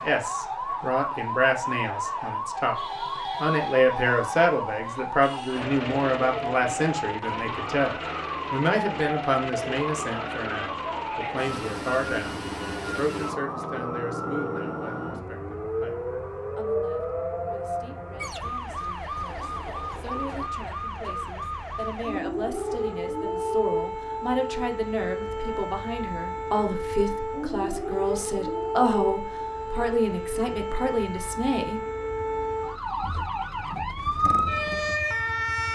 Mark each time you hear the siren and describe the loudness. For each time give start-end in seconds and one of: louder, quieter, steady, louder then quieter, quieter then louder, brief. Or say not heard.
0.0-35.7 steady.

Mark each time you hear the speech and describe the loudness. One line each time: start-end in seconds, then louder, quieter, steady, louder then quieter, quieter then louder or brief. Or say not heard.
0.0-31.8 quieter then louder.